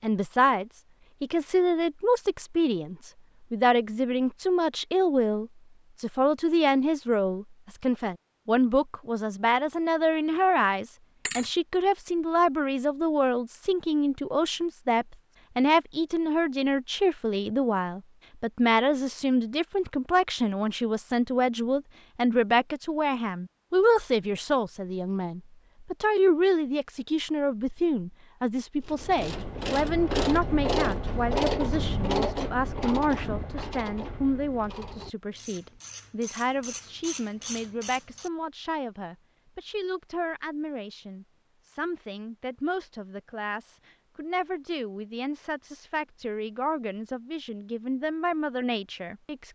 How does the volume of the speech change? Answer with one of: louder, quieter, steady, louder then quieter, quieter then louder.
quieter.